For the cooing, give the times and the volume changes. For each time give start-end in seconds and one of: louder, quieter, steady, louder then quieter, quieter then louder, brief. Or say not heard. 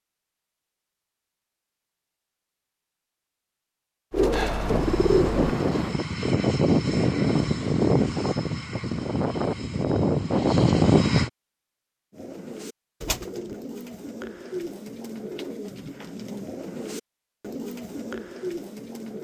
4.1-6.0 brief
12.1-19.1 steady.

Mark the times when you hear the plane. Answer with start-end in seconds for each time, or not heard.
4.7-11.3.